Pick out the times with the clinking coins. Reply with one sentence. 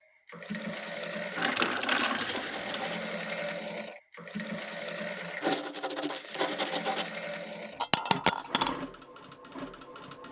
The clinking coins can be heard from 1.4 to 3.0 s and from 7.8 to 8.8 s.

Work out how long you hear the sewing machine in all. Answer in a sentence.
The sewing machine can be heard for 10 seconds in total.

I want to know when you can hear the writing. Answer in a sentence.
You can hear the writing from 1.4 to 3.0 s and from 5.4 to 7.1 s.